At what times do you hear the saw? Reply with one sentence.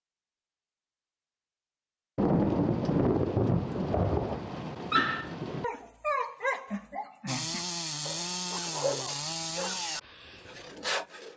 You can hear the saw from 7.2 to 11.3 s.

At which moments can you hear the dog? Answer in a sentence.
You can hear the dog from 4.9 to 10.7 s.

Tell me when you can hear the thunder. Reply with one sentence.
The thunder can be heard from 2.1 to 5.7 s.